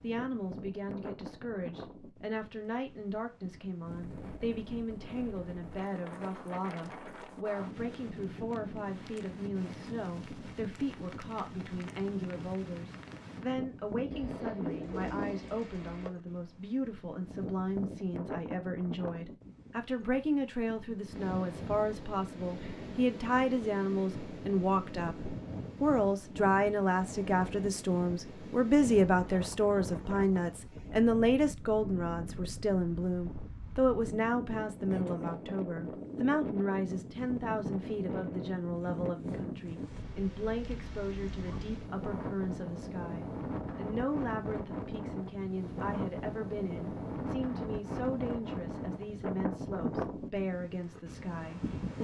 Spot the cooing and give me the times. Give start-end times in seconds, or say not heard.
14.1-16.1.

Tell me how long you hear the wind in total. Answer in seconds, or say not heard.
52 s.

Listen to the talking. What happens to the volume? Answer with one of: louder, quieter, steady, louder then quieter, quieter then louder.
louder then quieter.